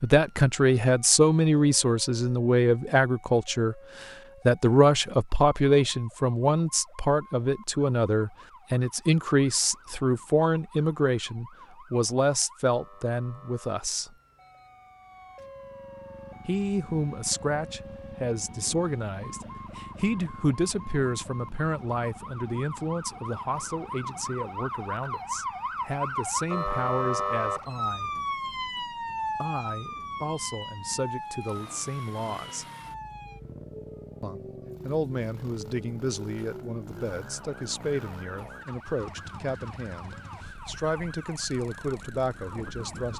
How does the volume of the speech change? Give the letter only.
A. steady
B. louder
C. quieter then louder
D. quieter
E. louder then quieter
D.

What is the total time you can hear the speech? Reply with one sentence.
The speech can be heard for 38 seconds in total.